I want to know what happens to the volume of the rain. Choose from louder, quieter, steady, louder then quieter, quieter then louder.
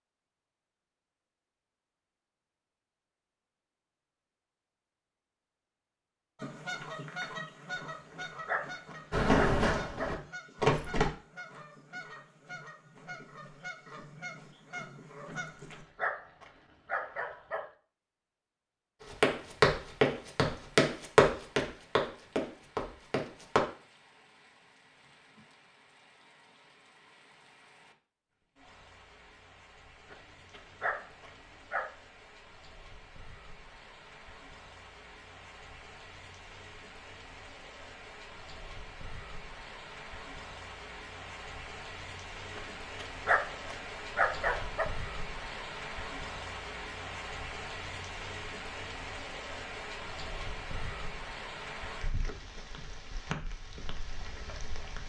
louder.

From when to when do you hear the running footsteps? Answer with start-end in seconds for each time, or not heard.
9.1-11.1, 19.1-23.6.